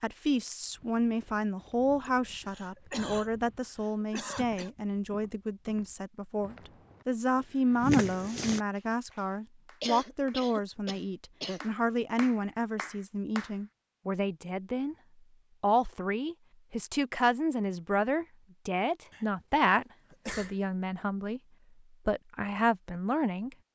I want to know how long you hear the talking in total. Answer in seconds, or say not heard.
22 s.